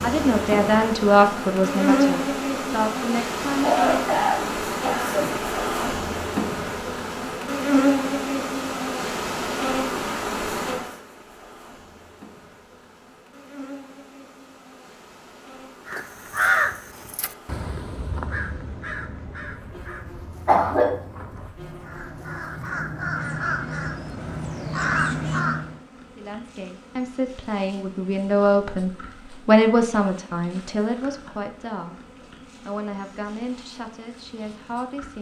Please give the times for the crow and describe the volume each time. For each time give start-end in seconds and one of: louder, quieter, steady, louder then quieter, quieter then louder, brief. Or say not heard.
15.8-25.8 quieter then louder.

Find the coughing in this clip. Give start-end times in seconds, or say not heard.
3.6-5.3, 20.4-20.9.